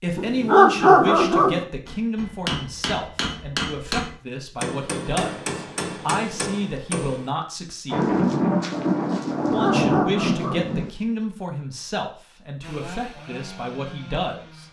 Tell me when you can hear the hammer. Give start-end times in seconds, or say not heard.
1.9-7.3.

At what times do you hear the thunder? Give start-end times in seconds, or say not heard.
7.9-10.9.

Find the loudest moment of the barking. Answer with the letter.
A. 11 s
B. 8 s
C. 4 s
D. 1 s
D.